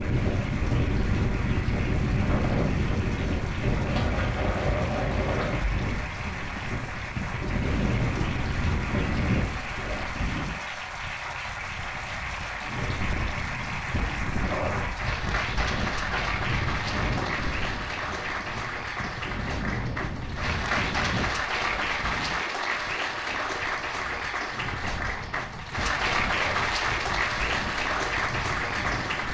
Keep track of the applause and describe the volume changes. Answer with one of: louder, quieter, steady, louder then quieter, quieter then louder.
louder.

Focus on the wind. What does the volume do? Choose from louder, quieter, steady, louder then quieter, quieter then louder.
quieter.